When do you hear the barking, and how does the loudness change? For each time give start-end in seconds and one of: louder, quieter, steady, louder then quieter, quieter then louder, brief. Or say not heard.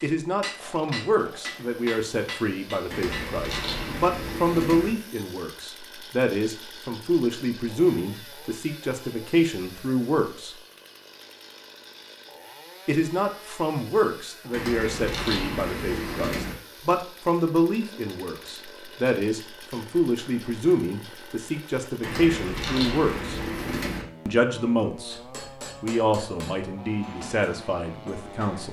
not heard.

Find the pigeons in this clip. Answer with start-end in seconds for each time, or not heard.
2.9-4.9, 14.5-16.6, 22.0-24.1.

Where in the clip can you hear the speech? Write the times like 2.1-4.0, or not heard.
0.0-10.6, 12.8-23.4, 24.2-25.2, 25.8-28.6.